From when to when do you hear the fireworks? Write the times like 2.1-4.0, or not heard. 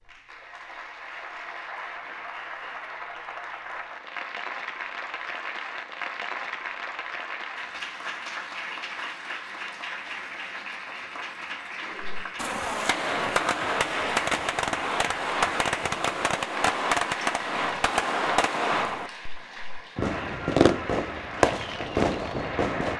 12.2-22.9.